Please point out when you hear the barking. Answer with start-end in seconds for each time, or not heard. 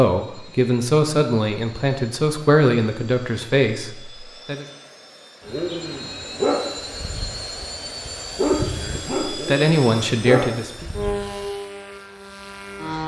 5.5-11.4.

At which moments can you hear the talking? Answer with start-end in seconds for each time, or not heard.
0.0-4.7, 8.8-10.9.